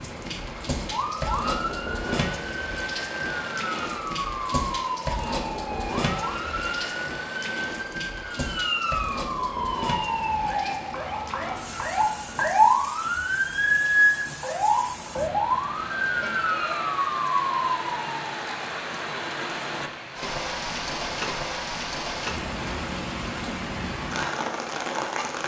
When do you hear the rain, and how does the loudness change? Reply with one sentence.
The rain can be heard from 0.0 to 25.4 s, getting quieter then louder.